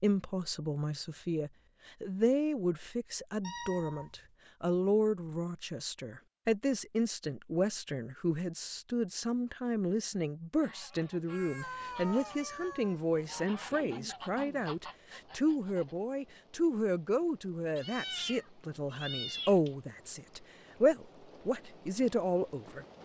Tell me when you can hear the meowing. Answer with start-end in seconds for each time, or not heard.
3.4-4.3, 11.3-13.6, 17.8-19.7.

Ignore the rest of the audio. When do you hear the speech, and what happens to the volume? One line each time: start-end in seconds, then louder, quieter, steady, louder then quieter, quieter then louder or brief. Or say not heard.
0.0-22.9 steady.